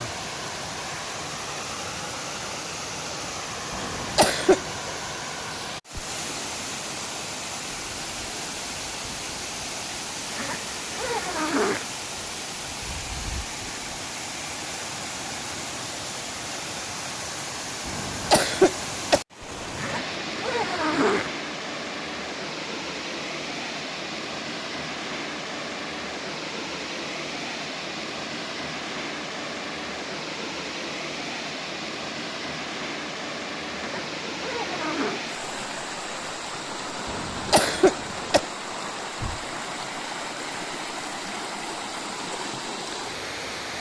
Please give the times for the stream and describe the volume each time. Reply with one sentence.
The stream can be heard from 0.0 to 43.7 s, at a steady volume.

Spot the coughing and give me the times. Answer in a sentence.
You can hear the coughing from 3.7 to 4.7 s, from 17.9 to 19.2 s and from 37.0 to 38.4 s.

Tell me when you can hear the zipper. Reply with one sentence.
The zipper can be heard from 10.3 to 11.8 s, from 19.8 to 21.3 s and from 33.8 to 35.2 s.